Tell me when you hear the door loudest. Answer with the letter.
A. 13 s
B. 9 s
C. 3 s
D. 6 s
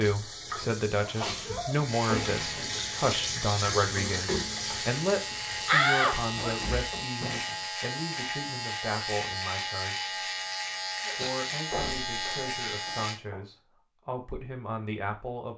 D.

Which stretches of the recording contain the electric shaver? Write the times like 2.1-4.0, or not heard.
1.9-13.2.